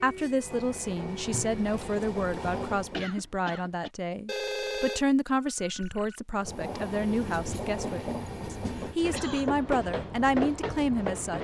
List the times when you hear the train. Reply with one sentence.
The train can be heard from 0.1 to 3.0 s and from 6.3 to 11.4 s.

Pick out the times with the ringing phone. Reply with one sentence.
You can hear the ringing phone from 4.2 to 6.2 s.